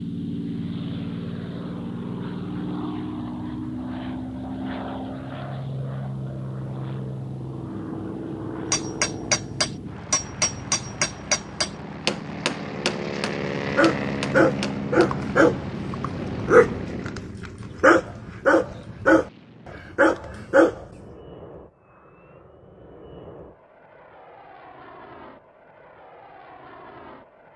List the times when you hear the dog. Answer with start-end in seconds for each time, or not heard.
13.7-20.9.